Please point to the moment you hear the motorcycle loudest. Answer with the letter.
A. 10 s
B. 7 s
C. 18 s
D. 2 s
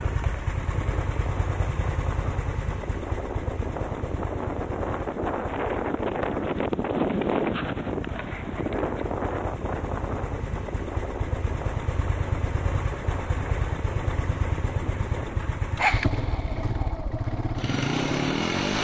C.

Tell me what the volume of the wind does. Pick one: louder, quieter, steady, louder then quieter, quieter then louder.
louder then quieter.